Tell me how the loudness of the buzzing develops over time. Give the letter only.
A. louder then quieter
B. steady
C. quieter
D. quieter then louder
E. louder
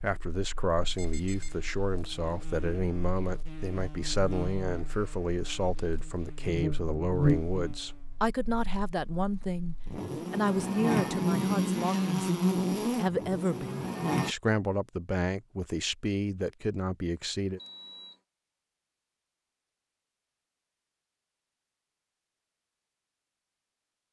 E.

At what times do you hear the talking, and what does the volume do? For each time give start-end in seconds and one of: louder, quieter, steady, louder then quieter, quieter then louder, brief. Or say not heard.
0.0-17.6 steady.